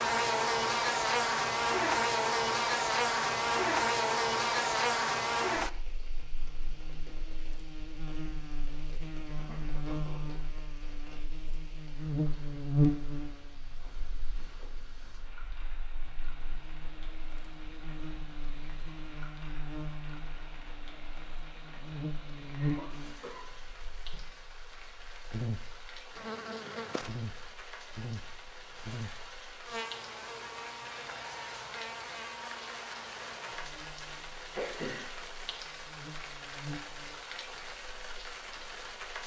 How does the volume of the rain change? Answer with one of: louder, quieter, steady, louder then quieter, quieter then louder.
louder.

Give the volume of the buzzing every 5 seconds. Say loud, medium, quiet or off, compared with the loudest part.
loud, medium, medium, quiet, quiet, quiet, quiet, quiet.